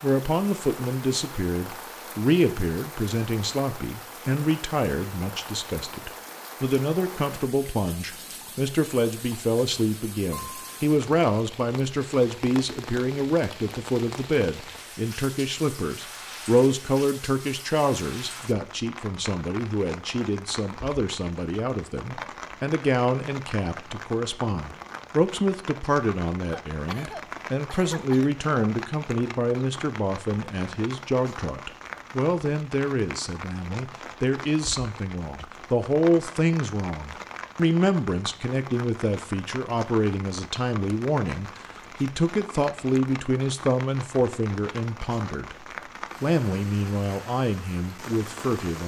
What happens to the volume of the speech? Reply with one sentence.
The volume of the speech stays about the same.